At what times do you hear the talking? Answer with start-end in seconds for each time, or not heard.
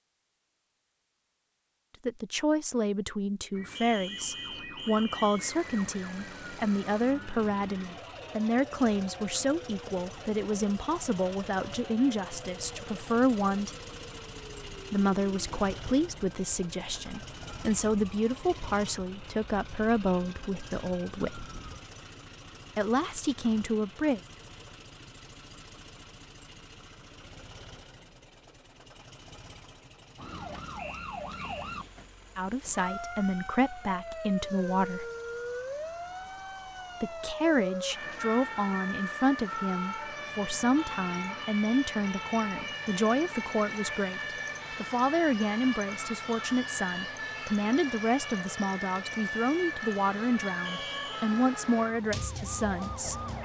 2.0-13.8, 14.9-21.5, 22.8-24.2, 32.4-35.1, 37.0-53.1.